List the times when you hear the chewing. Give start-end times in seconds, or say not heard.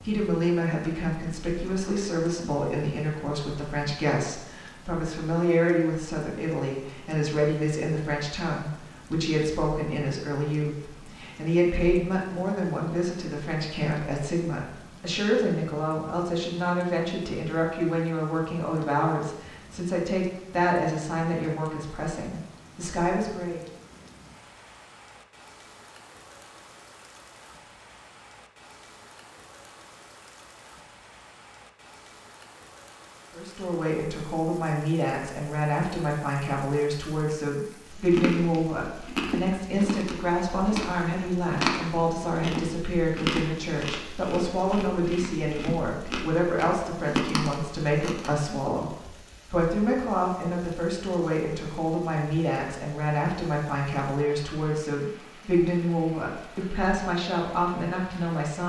38.0-48.6.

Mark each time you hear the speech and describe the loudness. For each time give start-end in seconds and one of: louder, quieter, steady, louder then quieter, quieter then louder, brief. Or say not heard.
0.0-23.6 steady
33.3-58.6 steady.